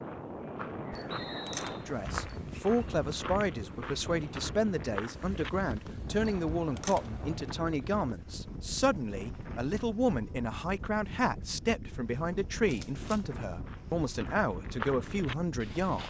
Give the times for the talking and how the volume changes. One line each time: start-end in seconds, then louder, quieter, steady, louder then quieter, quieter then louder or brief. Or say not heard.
1.9-16.0 steady.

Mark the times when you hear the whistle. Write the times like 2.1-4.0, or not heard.
1.1-1.9.